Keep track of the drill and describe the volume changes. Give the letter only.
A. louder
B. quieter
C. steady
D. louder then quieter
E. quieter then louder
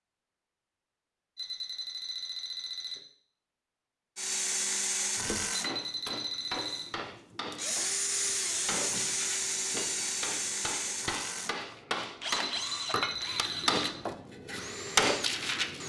B.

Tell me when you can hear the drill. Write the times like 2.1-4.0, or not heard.
4.2-15.8.